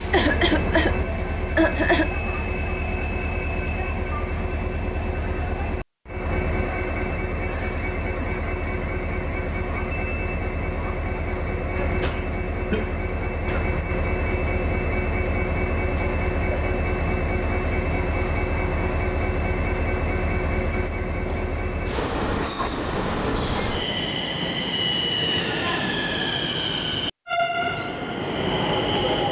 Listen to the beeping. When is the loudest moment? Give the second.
25 s.